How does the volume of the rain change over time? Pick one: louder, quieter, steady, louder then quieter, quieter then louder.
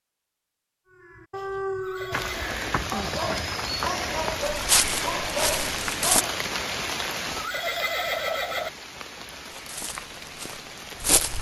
quieter.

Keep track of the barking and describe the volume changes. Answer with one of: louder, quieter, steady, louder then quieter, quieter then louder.
steady.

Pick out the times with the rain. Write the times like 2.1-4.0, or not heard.
2.1-11.3.